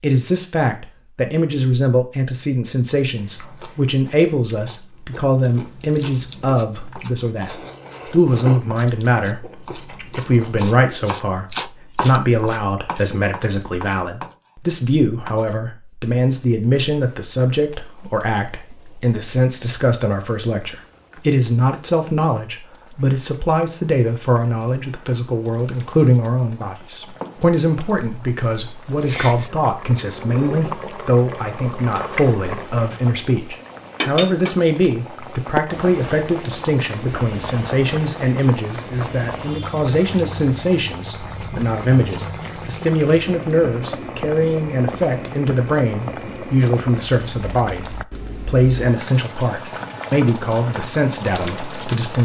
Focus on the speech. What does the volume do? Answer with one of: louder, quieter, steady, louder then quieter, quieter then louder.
steady.